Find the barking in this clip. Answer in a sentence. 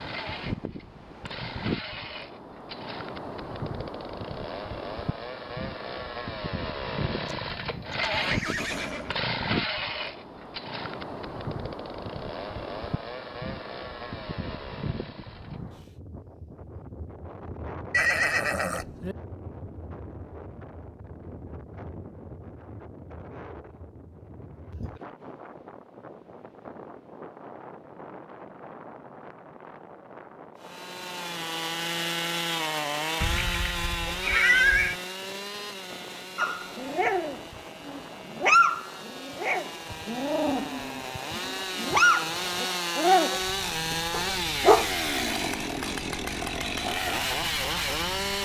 The barking can be heard from 36.4 to 45.6 s.